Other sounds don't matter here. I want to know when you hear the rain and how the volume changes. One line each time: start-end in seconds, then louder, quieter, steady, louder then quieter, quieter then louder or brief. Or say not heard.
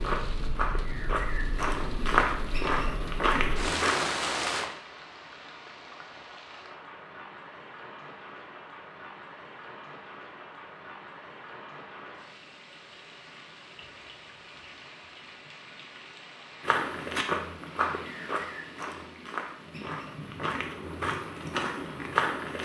0.0-22.3 quieter.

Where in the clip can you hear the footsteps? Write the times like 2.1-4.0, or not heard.
0.0-4.1, 16.6-22.5.